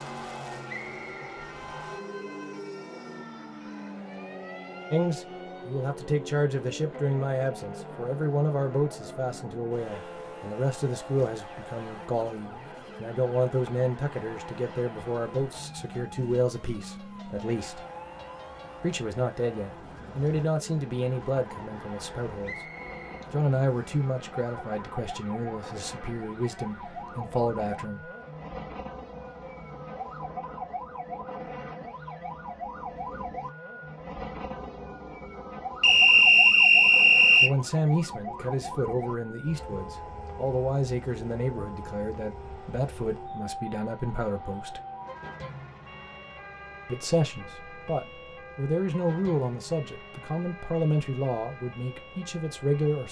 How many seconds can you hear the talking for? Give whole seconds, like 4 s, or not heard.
35 s.